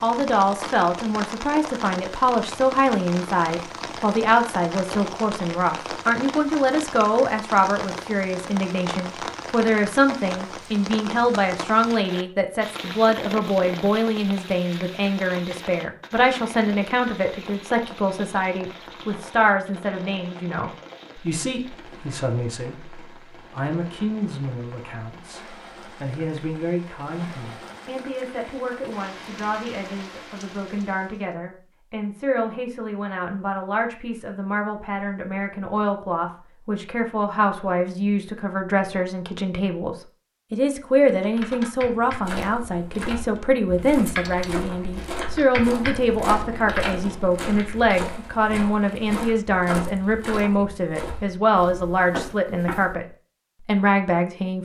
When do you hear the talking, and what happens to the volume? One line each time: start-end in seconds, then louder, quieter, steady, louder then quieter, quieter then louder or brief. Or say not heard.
0.0-53.0 quieter then louder
53.6-54.6 brief.